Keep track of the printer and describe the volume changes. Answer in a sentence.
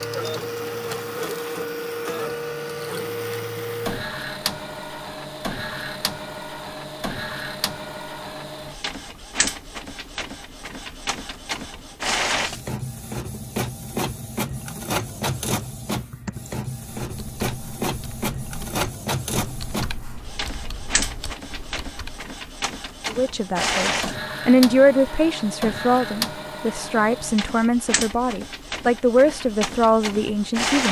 The volume of the printer stays about the same.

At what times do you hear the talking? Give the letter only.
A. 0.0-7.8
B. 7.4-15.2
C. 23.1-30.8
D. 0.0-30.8
C.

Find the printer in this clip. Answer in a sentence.
The printer can be heard from 0.0 to 30.8 s.